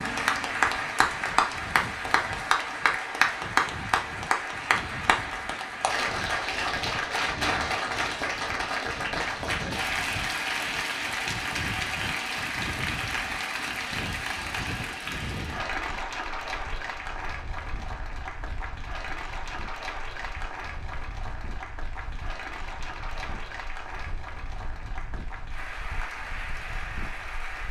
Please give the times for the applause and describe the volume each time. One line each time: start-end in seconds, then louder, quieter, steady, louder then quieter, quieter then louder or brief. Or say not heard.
0.0-27.6 quieter.